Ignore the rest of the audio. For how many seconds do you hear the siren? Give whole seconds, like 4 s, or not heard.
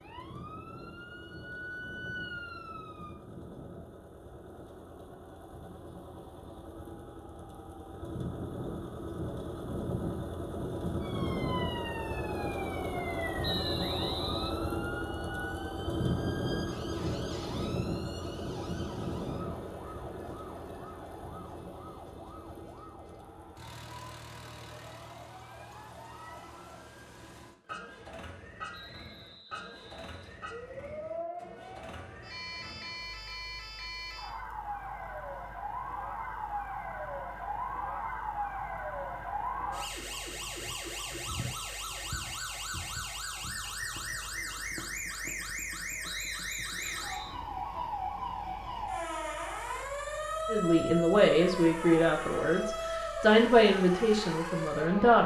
47 s.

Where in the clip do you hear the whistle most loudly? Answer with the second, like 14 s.
14 s.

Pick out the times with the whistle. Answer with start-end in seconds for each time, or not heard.
13.4-14.6, 28.7-30.4, 46.0-47.4.